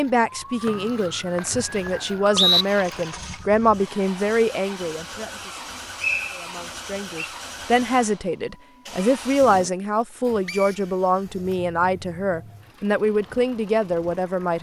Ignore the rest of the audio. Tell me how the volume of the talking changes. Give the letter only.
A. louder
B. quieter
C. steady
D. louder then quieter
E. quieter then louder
C.